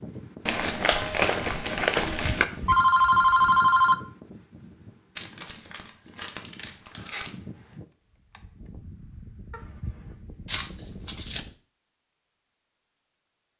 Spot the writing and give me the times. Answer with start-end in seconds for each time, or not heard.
not heard.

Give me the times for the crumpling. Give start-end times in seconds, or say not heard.
0.5-2.5, 5.2-7.3, 10.4-11.4.